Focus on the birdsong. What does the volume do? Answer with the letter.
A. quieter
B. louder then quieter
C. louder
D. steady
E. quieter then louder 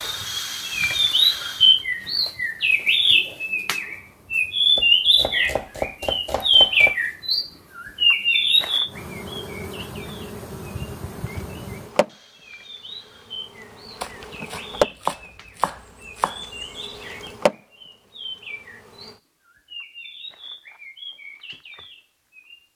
A.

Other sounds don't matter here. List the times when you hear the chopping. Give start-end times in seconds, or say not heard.
4.8-7.0, 14.0-16.4.